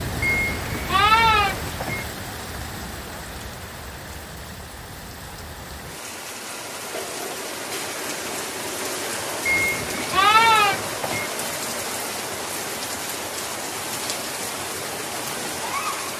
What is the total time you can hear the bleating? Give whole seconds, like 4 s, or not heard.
4 s.